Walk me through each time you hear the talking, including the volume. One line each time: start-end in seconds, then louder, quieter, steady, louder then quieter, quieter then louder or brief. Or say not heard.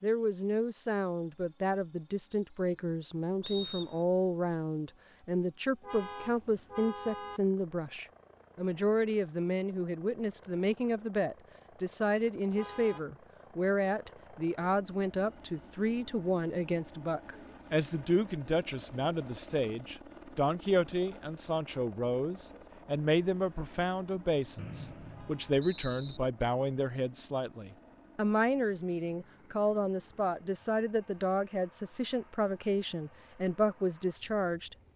0.0-34.8 steady.